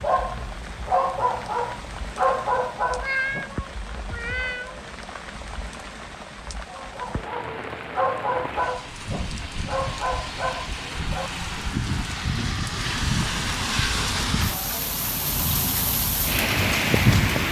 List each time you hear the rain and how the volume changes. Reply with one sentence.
The rain can be heard from 0.0 to 17.4 s, getting louder.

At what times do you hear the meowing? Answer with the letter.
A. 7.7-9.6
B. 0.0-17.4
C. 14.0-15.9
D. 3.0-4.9
D.